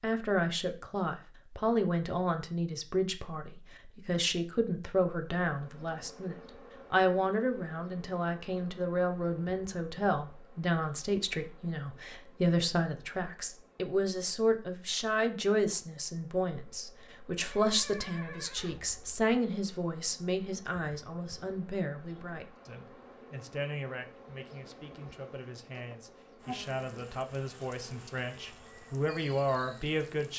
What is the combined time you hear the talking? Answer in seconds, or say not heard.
30 s.